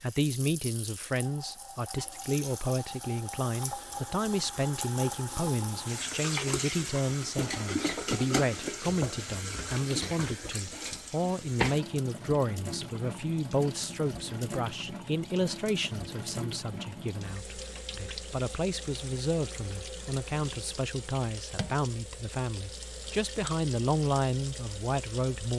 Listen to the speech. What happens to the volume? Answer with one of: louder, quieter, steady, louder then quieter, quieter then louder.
steady.